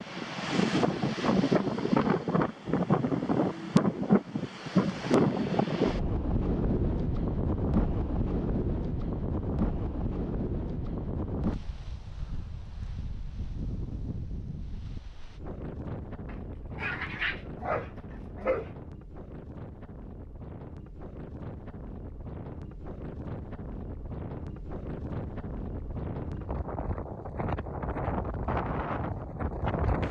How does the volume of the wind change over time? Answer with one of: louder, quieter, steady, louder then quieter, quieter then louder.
quieter then louder.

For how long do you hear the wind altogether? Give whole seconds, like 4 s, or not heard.
30 s.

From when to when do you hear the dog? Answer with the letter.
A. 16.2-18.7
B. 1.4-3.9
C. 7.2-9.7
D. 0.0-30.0
A.